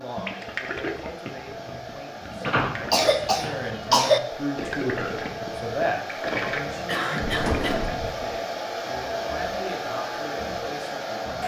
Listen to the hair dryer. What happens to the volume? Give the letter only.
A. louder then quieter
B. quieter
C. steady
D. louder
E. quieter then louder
D.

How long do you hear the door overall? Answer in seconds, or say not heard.
2 s.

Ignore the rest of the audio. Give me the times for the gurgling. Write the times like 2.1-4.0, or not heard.
0.1-8.3.